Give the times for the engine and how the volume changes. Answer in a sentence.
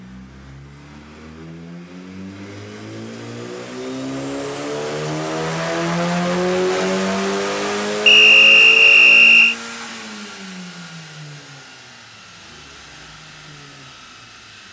The engine can be heard from 0.0 to 14.6 s, getting louder then quieter.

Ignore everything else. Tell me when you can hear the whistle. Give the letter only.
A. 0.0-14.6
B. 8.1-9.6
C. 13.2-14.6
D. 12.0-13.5
B.